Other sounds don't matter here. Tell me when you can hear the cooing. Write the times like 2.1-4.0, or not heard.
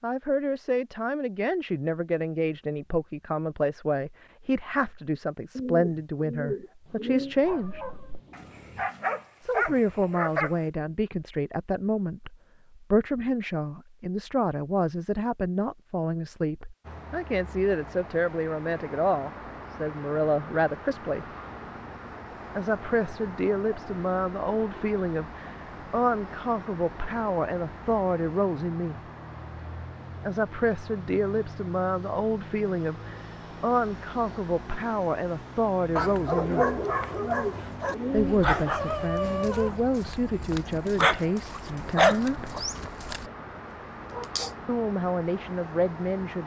5.5-7.3, 36.5-38.5.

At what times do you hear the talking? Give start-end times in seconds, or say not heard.
0.0-7.8, 9.4-21.2, 22.6-29.0, 30.2-36.7, 38.1-42.5, 44.6-46.4.